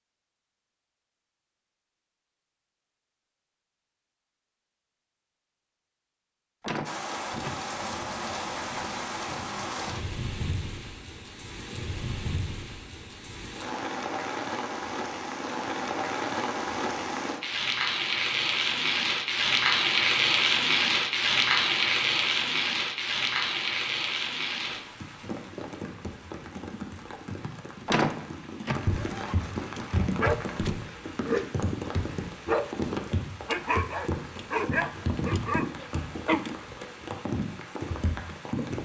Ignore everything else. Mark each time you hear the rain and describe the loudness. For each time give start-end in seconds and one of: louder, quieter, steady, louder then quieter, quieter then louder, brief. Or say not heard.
6.8-38.8 louder then quieter.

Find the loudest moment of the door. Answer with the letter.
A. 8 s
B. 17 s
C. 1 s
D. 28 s
D.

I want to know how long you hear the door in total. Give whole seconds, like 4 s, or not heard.
2 s.